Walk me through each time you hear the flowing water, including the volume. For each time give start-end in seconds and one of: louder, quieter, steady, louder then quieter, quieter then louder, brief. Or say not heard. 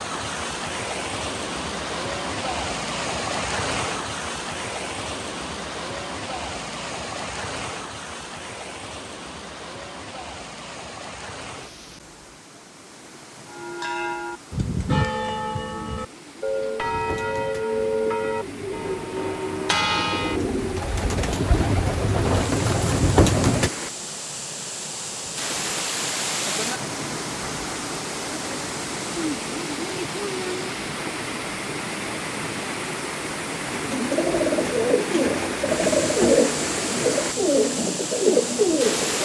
0.0-39.1 quieter then louder.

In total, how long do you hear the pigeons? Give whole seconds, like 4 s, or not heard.
12 s.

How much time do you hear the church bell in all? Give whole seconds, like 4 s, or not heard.
7 s.